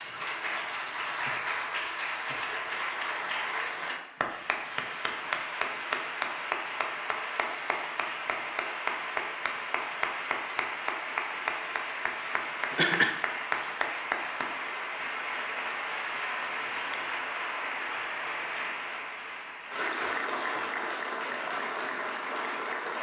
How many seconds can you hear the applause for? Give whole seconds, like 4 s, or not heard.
23 s.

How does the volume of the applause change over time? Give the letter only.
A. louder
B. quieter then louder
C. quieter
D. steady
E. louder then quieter
D.